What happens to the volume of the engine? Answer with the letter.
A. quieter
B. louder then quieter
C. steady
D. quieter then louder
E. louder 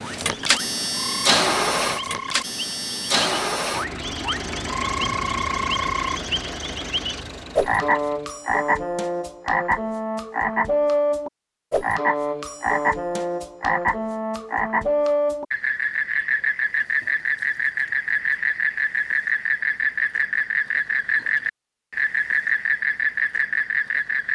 A.